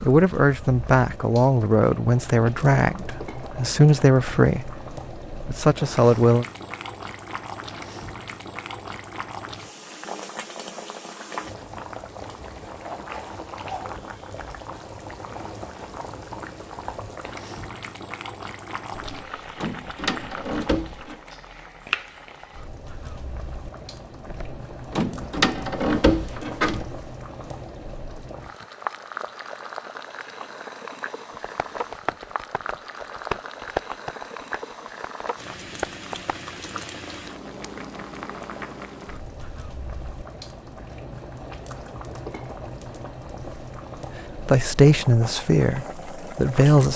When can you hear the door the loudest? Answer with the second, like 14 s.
26 s.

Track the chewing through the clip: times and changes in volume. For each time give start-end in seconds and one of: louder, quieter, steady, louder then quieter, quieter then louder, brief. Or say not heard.
not heard.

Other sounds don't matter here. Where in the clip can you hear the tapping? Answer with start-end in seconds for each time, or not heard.
31.4-36.4.